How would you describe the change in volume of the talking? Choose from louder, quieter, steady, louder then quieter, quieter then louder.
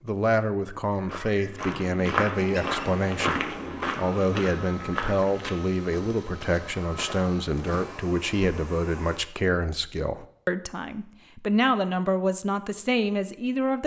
steady.